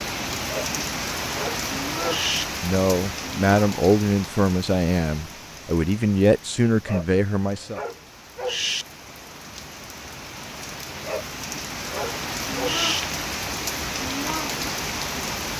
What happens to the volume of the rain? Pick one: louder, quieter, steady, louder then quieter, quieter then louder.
quieter then louder.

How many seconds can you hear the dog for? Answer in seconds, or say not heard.
6 s.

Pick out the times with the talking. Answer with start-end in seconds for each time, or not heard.
2.6-7.8.